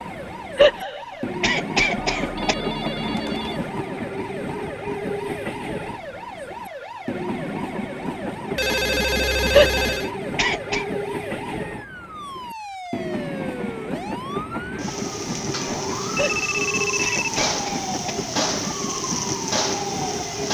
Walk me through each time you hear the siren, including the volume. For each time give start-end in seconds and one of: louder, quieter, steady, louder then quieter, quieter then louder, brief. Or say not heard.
0.0-20.4 louder.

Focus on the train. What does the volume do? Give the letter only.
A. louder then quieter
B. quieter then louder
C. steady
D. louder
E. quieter
C.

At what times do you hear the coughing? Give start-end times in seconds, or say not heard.
0.6-2.5, 9.5-10.8, 16.1-18.1.